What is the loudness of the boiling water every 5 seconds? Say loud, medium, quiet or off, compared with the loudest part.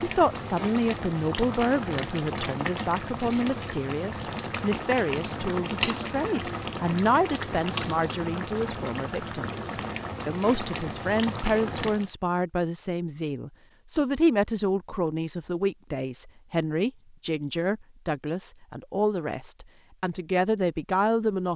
loud, loud, loud, off, off.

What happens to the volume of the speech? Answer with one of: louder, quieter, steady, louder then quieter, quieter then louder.
steady.